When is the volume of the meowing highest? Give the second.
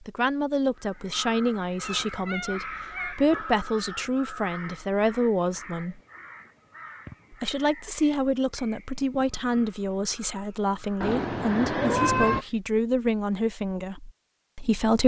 12 s.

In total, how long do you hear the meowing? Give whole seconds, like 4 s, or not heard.
3 s.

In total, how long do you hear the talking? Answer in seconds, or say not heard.
14 s.